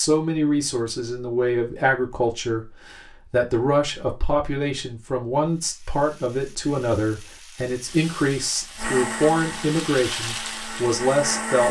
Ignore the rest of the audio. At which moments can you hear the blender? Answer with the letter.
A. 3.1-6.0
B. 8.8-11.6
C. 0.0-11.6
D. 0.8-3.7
B.